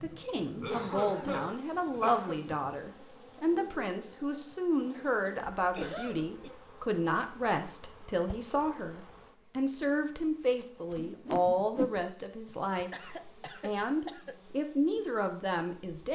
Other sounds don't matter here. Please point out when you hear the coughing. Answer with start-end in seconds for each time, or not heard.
0.5-2.4, 5.8-6.5, 12.4-14.3.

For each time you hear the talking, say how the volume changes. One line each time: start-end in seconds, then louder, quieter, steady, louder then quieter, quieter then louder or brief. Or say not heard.
0.0-16.0 steady.